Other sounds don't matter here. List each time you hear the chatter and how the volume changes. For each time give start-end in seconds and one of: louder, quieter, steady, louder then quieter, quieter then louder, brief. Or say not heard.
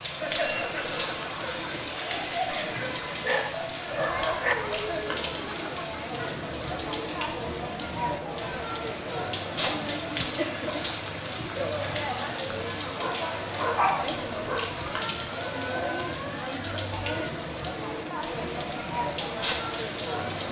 0.0-20.4 steady.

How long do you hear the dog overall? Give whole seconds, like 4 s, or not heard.
4 s.